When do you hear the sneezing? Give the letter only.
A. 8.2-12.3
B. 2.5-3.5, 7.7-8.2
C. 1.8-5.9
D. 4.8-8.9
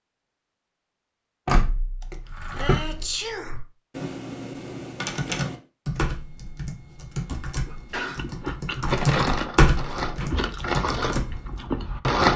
B.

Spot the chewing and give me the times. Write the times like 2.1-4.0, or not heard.
8.2-12.3.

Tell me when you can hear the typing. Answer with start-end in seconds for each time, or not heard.
2.2-11.6.